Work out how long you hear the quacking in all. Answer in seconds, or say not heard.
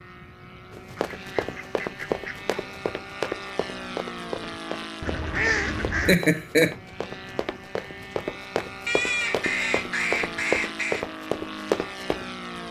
5 s.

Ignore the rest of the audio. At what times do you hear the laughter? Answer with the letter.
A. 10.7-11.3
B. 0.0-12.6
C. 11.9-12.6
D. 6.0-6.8
D.